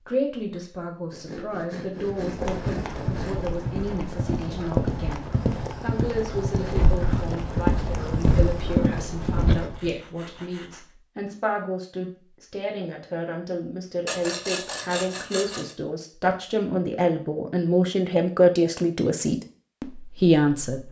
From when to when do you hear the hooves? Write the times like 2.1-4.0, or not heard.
2.0-9.9.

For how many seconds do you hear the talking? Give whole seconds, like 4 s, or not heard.
21 s.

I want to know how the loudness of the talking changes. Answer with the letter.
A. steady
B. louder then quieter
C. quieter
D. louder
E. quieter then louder
D.